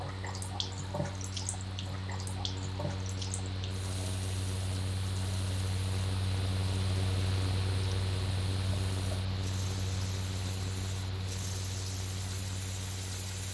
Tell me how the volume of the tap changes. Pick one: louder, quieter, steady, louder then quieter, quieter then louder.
quieter then louder.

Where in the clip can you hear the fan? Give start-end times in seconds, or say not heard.
0.0-13.5.